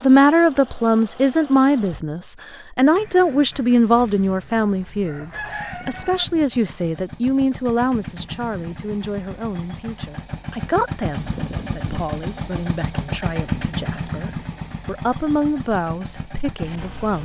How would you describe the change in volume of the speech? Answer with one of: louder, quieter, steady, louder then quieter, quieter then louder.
quieter.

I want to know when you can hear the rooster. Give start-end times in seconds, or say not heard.
4.6-6.2.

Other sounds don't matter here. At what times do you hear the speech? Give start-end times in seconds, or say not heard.
0.0-17.2.